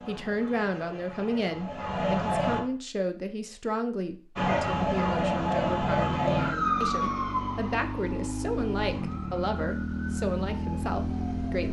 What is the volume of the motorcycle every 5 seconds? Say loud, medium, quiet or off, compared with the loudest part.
off, loud, loud.